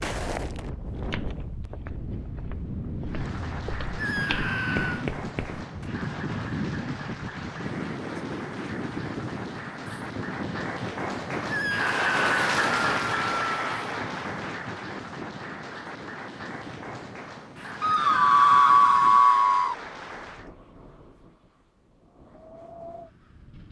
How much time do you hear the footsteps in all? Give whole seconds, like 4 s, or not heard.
6 s.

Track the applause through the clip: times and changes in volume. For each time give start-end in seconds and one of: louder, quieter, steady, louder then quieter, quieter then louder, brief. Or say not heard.
3.0-20.5 louder then quieter.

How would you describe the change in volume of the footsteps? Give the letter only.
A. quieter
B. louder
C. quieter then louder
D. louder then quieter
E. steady
C.